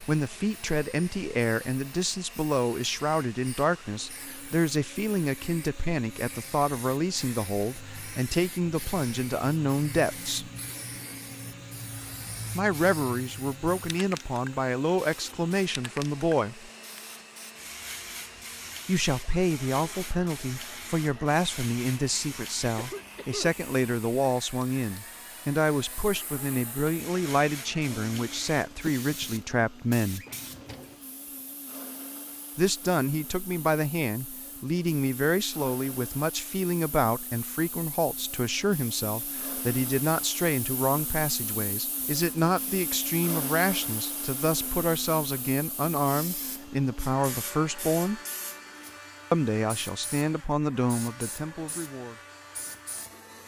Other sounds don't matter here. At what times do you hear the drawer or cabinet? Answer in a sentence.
The drawer or cabinet can be heard from 30.1 to 31.1 s.